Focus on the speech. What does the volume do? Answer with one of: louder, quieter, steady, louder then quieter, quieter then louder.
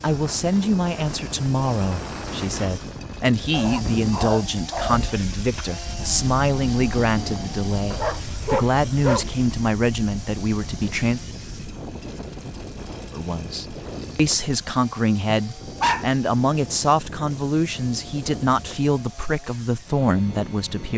steady.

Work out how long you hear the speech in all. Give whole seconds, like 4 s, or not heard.
19 s.